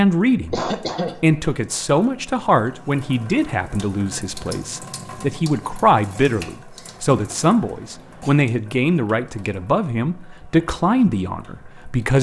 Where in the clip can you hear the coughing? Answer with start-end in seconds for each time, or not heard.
0.3-1.1, 7.0-8.4.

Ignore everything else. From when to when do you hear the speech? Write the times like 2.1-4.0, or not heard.
0.0-12.1.